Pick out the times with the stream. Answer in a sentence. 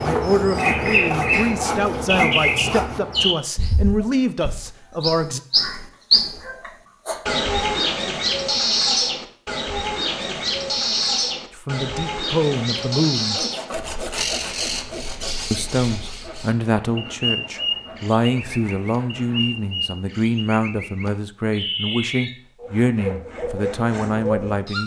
You can't hear the stream here.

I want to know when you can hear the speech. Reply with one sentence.
You can hear the speech from 0.0 to 5.4 s, from 11.5 to 13.4 s and from 15.5 to 24.8 s.